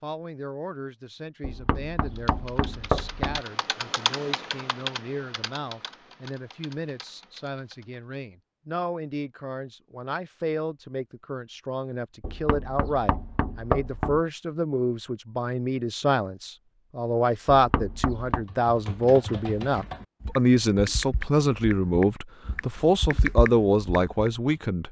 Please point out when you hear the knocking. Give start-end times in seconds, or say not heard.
1.4-3.4, 12.2-14.2, 17.5-18.4.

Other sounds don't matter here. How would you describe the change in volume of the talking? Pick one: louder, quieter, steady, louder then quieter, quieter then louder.
louder.